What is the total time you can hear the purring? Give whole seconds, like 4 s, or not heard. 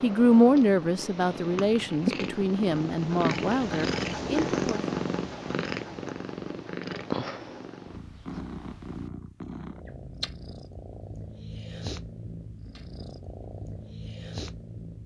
15 s.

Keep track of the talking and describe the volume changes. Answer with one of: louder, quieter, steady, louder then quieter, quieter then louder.
quieter.